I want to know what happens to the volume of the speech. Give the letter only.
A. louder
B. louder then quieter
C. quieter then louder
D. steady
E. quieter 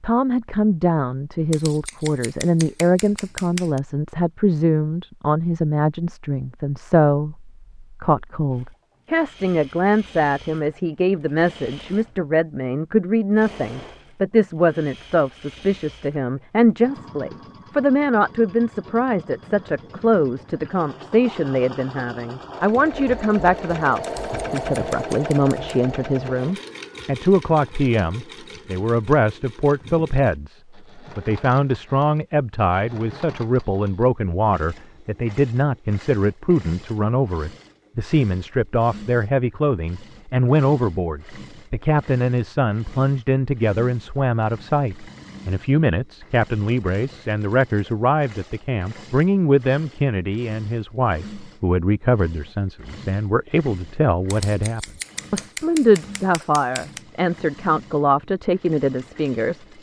D.